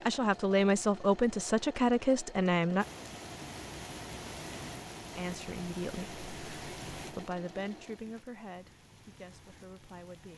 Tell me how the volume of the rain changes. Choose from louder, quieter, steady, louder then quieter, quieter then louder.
quieter.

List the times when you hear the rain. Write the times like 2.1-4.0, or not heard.
2.8-10.3.